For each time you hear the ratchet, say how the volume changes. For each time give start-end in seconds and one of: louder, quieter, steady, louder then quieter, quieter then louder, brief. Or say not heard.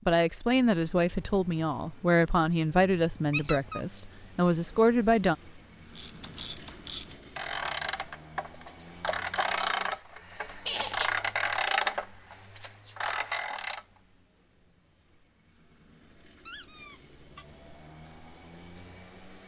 5.9-13.8 louder then quieter.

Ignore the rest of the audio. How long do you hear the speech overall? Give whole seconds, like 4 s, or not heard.
5 s.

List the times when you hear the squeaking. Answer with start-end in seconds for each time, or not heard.
3.3-3.8, 10.7-11.2, 16.4-17.4.